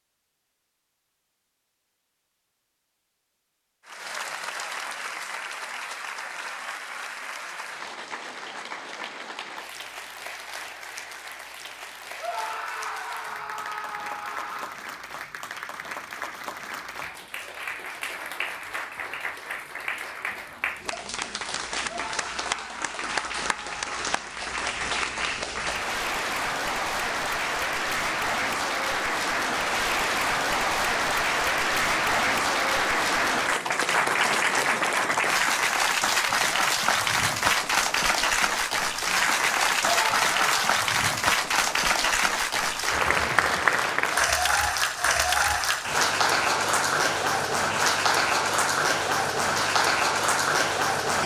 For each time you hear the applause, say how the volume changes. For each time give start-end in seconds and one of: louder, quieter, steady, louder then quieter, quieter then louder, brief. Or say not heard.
3.9-51.2 louder.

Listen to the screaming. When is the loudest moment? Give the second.
40 s.